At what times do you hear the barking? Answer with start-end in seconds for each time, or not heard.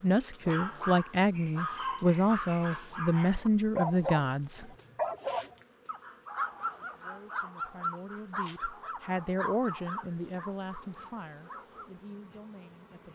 0.5-11.9.